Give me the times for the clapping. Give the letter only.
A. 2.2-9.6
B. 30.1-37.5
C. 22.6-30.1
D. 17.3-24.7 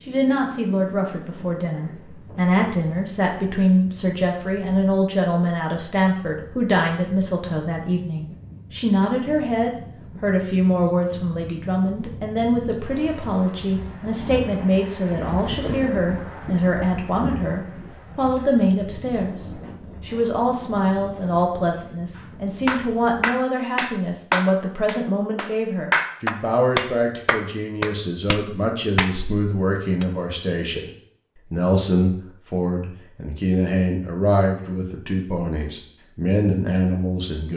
C.